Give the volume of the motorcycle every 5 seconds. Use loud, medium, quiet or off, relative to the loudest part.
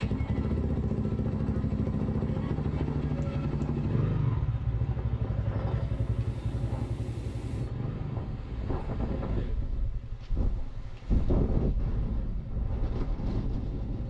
loud, medium, quiet.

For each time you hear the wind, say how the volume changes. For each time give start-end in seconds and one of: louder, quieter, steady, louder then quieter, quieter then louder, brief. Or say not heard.
0.0-14.0 louder.